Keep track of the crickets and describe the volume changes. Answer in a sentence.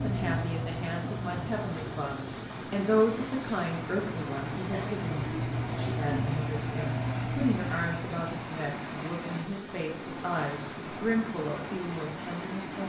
The volume of the crickets goes down, then up.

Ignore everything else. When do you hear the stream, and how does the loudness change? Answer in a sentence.
The stream can be heard from 0.0 to 12.8 s, at a steady volume.